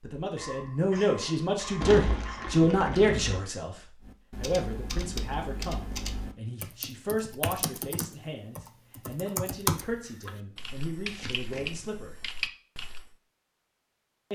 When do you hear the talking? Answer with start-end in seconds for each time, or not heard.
0.0-12.2.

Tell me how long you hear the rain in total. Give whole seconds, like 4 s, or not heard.
not heard.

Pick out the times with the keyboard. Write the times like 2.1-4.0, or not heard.
4.0-13.2.